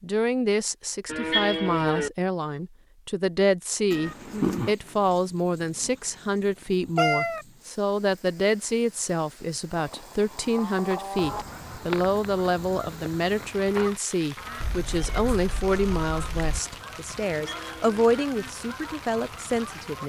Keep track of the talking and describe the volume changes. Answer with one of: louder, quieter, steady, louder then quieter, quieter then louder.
steady.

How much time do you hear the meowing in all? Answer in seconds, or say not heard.
3 s.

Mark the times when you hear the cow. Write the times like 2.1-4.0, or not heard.
1.1-2.1, 9.8-11.4, 17.2-18.2.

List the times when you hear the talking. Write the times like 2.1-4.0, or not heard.
0.0-20.0.